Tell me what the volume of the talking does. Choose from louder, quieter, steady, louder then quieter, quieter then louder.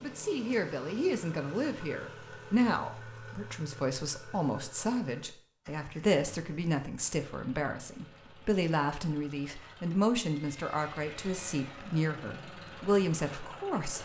steady.